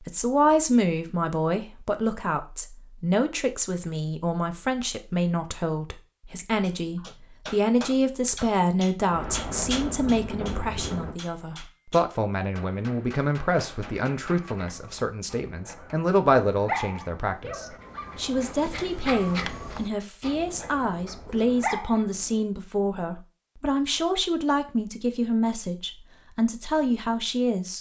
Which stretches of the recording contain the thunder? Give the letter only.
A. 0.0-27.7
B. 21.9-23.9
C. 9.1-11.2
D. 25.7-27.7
C.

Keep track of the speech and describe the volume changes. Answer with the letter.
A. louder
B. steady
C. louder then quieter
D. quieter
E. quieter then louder
B.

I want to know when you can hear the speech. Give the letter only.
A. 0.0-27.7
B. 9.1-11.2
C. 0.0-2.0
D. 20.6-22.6
A.